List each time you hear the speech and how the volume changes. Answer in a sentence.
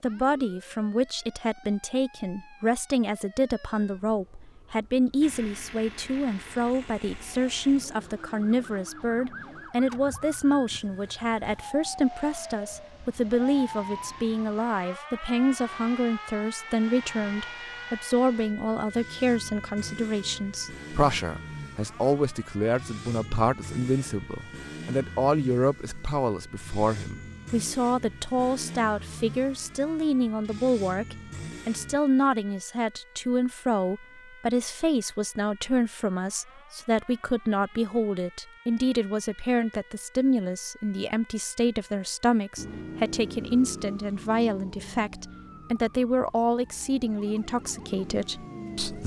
The speech can be heard from 0.0 to 49.0 s, at a steady volume.